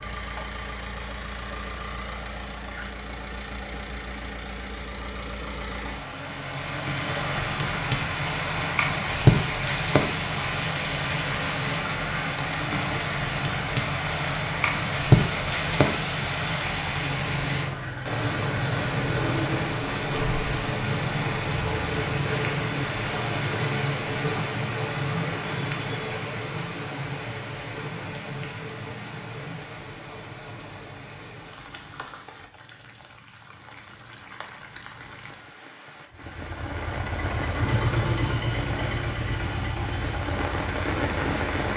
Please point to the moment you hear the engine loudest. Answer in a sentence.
The volume of the engine peaks at 38 seconds.